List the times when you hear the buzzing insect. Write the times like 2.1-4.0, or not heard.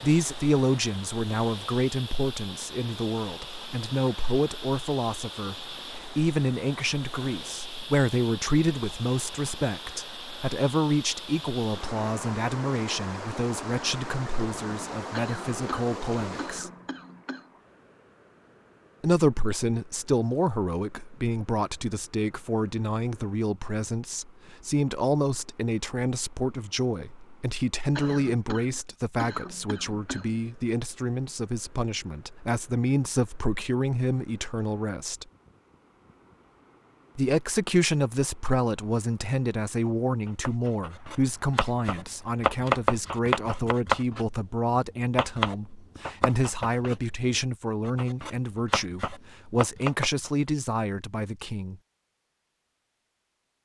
not heard.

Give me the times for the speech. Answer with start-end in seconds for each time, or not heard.
0.0-16.7, 19.0-35.2, 37.1-51.8.